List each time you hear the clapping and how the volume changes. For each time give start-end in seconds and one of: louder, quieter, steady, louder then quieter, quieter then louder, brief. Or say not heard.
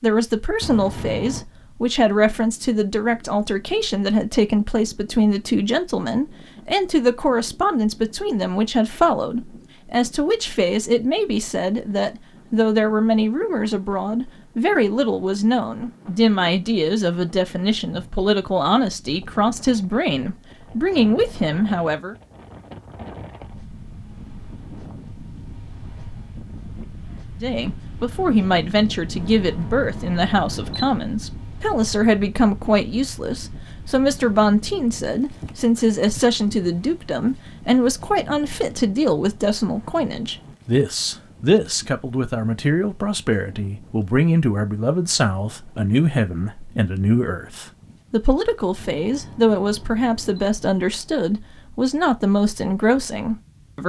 not heard.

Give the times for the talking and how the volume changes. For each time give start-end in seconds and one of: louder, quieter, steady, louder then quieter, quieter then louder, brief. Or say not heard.
0.0-22.1 steady
27.4-53.8 steady.